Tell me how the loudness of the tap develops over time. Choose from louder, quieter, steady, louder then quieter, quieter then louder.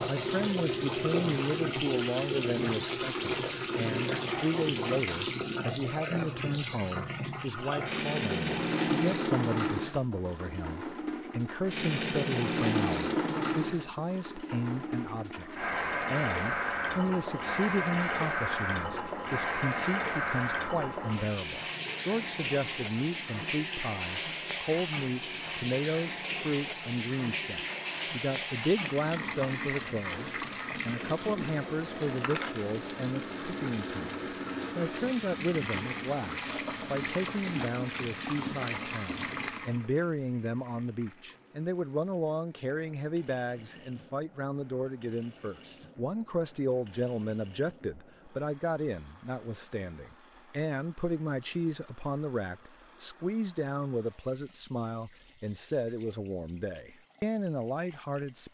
quieter.